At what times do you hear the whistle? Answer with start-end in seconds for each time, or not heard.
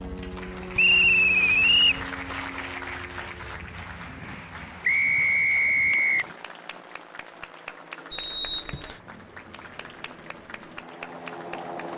0.8-2.0, 4.8-6.2, 8.1-8.9.